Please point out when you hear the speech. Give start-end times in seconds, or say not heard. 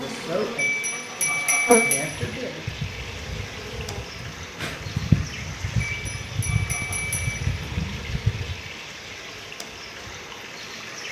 0.0-2.6.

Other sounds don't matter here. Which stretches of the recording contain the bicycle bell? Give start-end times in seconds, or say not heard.
0.6-2.1, 5.8-7.8.